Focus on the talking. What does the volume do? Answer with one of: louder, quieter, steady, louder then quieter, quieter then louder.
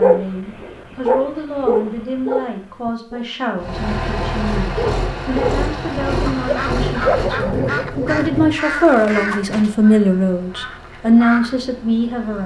louder.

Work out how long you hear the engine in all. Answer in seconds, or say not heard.
9 s.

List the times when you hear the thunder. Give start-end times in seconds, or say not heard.
7.0-8.5.